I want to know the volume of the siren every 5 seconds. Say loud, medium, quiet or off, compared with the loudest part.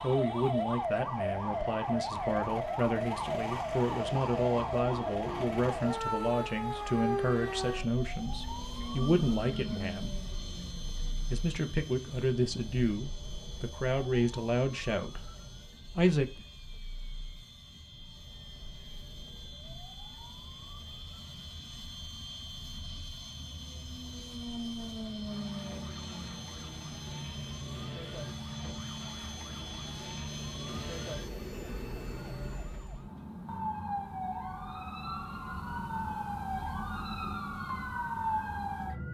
loud, loud, quiet, quiet, quiet, medium, medium, loud.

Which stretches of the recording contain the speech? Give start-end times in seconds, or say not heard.
0.0-10.2, 11.3-15.3, 15.9-16.4.